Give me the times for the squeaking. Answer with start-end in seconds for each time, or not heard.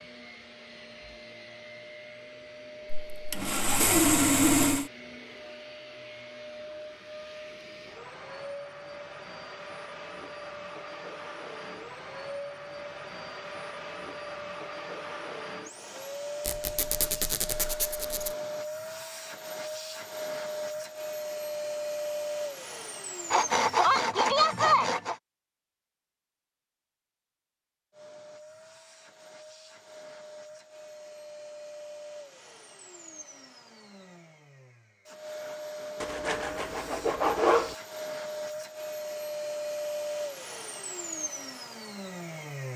16.4-18.4.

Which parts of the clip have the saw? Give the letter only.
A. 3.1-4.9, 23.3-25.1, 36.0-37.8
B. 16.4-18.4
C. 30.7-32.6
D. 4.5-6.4
A.